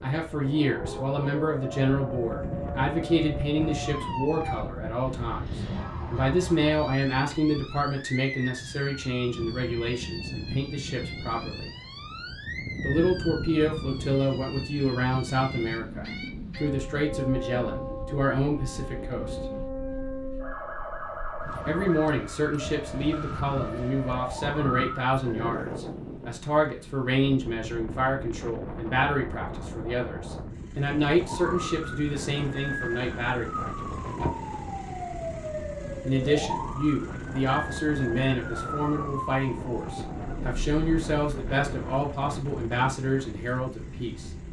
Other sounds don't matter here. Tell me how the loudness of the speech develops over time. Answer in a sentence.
The volume of the speech stays about the same.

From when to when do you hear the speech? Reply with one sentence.
You can hear the speech from 0.0 to 11.7 s, from 12.8 to 19.4 s, from 21.6 to 33.9 s and from 36.0 to 44.3 s.